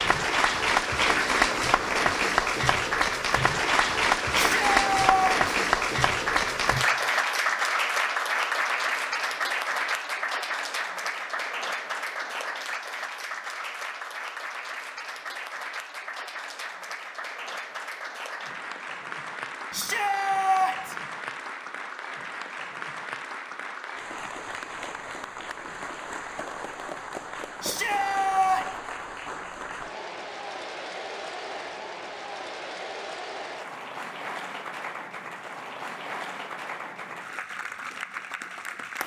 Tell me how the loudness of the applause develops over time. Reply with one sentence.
The volume of the applause goes down.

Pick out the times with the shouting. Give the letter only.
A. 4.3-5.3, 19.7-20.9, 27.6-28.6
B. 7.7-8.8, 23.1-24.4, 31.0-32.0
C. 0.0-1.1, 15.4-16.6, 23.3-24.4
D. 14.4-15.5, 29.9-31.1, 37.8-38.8
A.